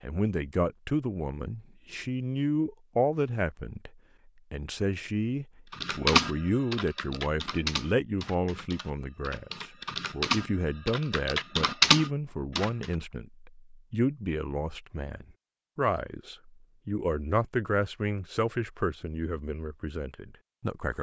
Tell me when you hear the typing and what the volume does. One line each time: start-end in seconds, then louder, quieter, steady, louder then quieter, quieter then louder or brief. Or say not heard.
5.7-12.8 quieter then louder.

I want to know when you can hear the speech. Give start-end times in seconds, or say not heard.
0.0-3.9, 4.5-20.9.